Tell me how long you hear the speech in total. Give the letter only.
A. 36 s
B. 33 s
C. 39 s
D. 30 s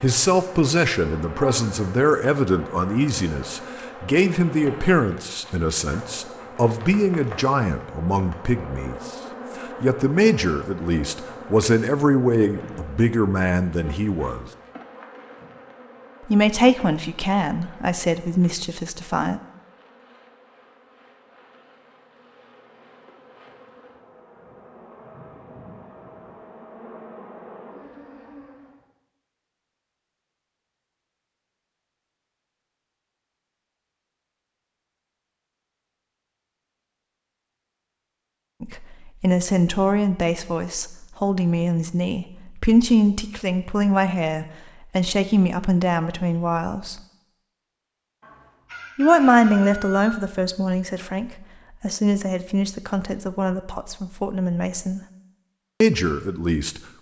B.